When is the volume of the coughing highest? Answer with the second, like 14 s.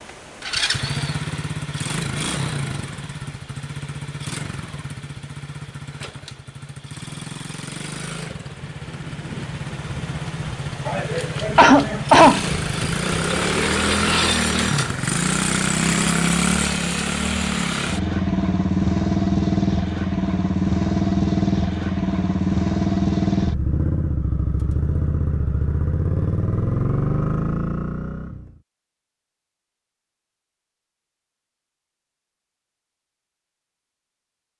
12 s.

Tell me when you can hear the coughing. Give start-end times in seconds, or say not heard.
10.8-12.4.